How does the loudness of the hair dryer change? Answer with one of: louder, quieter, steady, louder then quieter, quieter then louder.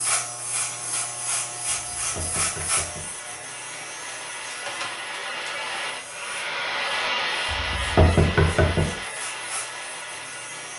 louder then quieter.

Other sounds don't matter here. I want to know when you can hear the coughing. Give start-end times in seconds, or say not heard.
not heard.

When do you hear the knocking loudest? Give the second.
8 s.